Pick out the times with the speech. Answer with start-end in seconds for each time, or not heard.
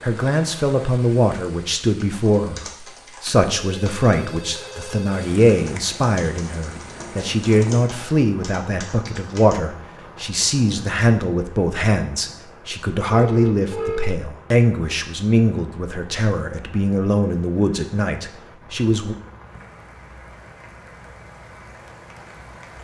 0.0-19.1.